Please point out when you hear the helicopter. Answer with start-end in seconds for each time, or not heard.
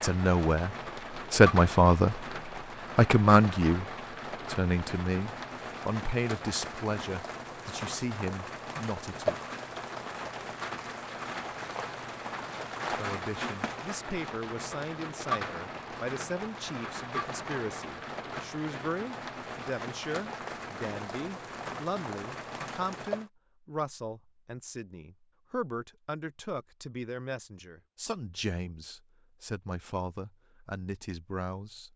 not heard.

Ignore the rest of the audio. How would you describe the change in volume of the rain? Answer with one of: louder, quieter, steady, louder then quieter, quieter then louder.
steady.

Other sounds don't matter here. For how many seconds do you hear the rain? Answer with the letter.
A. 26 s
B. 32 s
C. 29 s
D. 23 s
D.